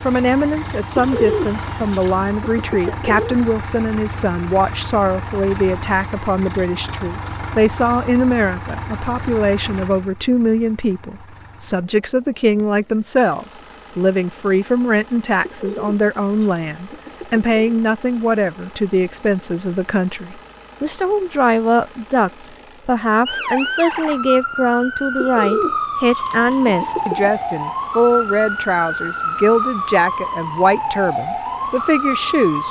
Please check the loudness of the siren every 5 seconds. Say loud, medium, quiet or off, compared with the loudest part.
quiet, off, off, off, loud, loud, loud.